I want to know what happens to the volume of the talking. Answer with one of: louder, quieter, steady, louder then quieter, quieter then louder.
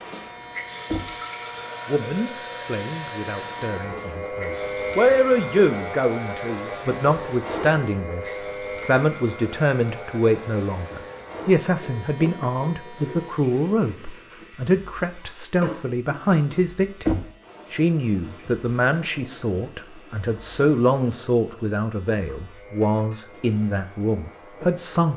steady.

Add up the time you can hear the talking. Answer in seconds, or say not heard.
23 s.